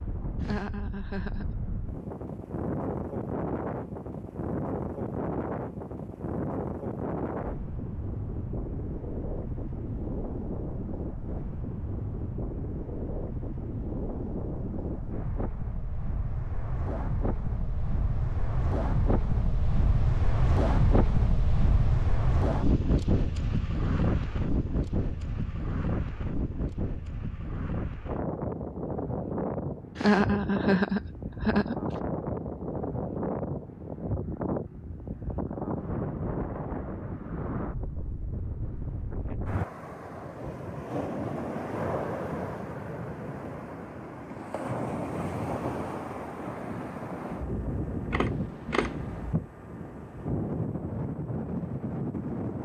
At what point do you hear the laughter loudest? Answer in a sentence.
The loudest moment of the laughter is at 30 seconds.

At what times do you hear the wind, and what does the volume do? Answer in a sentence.
The wind can be heard from 0.0 to 52.5 s, at a steady volume.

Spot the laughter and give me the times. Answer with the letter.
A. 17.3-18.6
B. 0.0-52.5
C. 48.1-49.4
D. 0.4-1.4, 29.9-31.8
D.